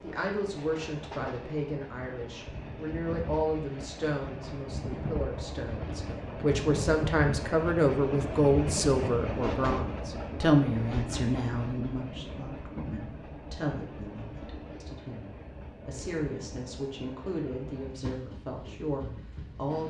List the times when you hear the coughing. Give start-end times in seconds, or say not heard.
not heard.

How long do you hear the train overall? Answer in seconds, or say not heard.
20 s.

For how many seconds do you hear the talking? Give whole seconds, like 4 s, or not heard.
20 s.